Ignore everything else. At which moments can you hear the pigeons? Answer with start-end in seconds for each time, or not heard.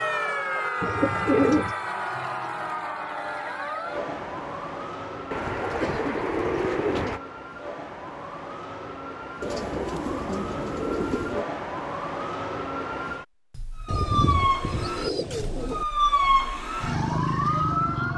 0.8-1.8, 5.3-7.2, 9.4-11.4, 13.8-15.8.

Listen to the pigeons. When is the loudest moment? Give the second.
1 s.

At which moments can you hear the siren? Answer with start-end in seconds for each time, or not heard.
0.0-18.1.